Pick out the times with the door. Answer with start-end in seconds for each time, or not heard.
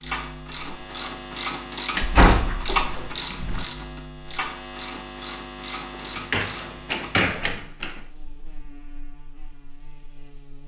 1.9-3.6, 6.2-7.9.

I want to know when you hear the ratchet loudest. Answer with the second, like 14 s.
3 s.